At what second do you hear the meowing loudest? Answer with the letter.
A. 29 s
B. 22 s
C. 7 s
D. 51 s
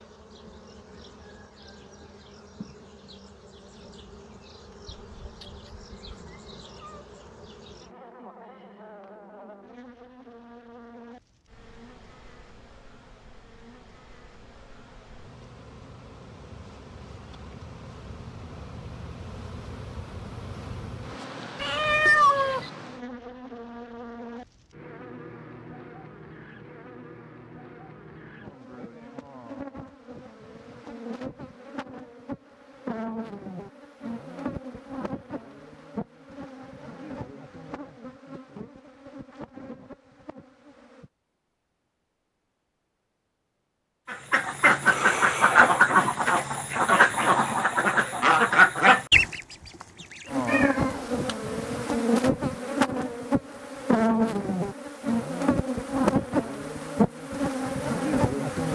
B.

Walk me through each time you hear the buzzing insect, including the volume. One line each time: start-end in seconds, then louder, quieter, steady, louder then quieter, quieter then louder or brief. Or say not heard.
0.0-41.1 louder
50.2-58.7 steady.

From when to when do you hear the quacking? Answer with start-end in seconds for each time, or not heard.
44.0-50.5.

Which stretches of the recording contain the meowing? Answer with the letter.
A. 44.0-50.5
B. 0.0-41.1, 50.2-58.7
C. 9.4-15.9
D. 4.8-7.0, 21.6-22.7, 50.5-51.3
D.